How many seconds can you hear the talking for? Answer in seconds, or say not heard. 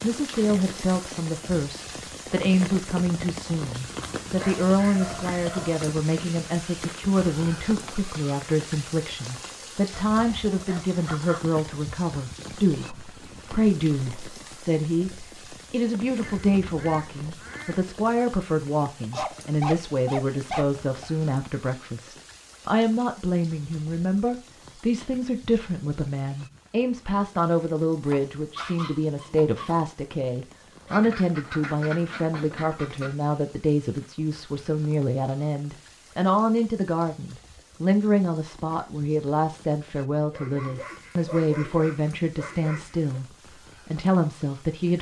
45 s.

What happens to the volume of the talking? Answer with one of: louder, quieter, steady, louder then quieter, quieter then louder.
steady.